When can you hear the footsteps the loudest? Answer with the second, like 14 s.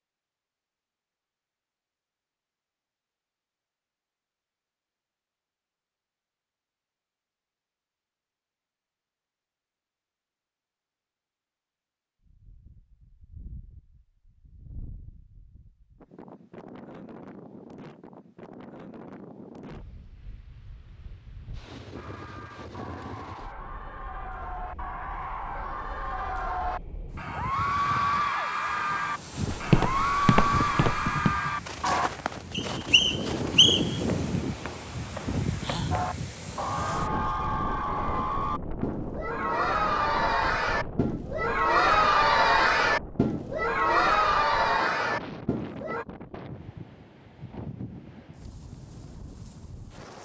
30 s.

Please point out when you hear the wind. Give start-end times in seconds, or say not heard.
12.2-50.2.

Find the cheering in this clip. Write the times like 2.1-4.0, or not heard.
21.9-32.1, 35.9-46.0.